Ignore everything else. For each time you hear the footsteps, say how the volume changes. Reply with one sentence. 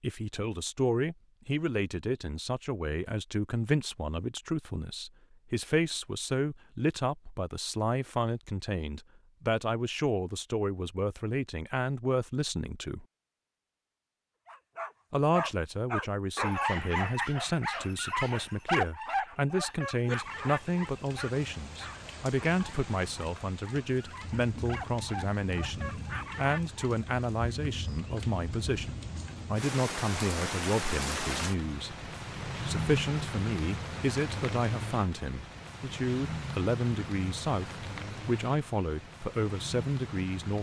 The footsteps can't be heard in this clip.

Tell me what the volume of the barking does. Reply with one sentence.
The volume of the barking goes down, then up.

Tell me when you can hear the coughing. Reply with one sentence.
The coughing can't be heard in this clip.